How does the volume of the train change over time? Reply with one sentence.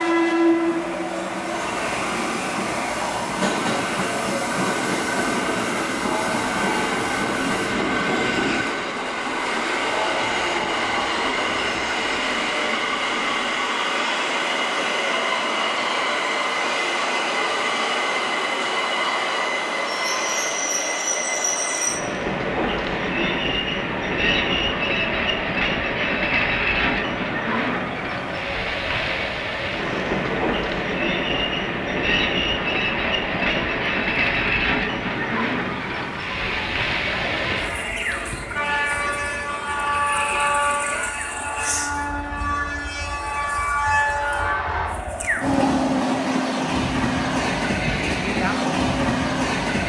The volume of the train stays about the same.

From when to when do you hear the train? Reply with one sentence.
The train can be heard from 0.0 to 49.8 s.